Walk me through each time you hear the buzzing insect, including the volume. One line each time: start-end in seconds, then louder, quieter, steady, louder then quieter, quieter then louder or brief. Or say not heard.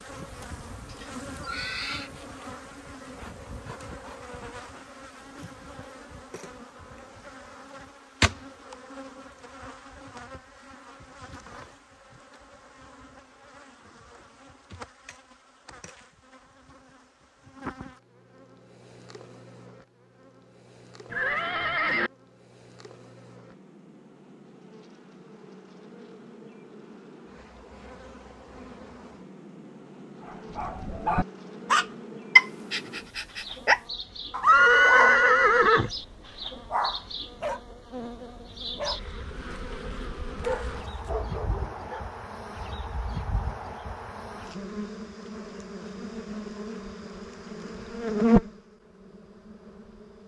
0.0-50.2 quieter then louder.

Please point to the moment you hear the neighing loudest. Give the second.
35 s.